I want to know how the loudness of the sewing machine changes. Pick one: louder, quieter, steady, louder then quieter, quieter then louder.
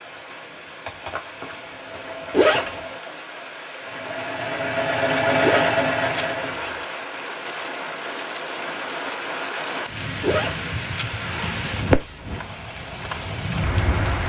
louder.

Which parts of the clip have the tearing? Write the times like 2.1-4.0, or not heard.
0.8-2.5.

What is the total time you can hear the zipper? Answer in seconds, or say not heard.
4 s.